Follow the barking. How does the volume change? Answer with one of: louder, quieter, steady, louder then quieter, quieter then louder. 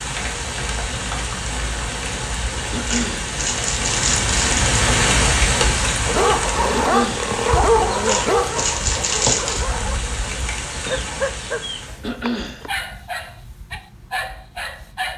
quieter.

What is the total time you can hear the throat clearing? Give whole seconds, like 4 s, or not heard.
2 s.